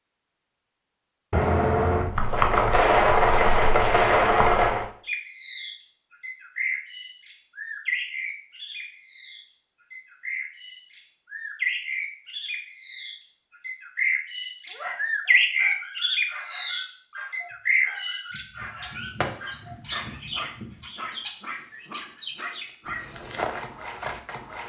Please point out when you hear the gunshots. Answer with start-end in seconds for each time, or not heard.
1.3-4.8, 18.3-20.7.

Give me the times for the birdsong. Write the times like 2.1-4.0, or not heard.
5.0-24.6.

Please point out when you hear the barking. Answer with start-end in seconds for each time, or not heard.
14.7-23.2.